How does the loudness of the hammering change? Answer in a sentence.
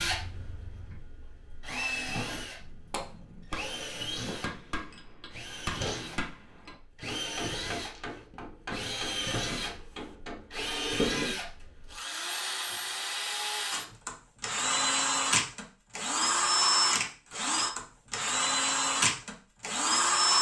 The loudness of the hammering stays about the same.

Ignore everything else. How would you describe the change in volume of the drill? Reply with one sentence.
The loudness of the drill goes up.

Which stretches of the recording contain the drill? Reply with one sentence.
You can hear the drill from 0.0 to 20.3 s.